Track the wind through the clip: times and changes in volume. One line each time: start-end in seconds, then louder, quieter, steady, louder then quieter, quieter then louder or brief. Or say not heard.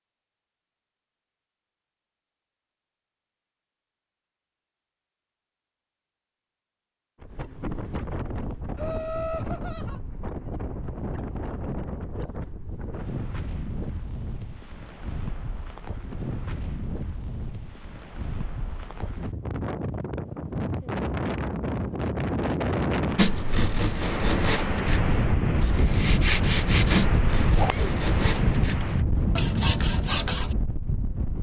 7.2-31.3 louder.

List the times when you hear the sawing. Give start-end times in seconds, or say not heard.
23.1-30.6.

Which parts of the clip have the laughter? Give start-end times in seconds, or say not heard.
8.8-10.0.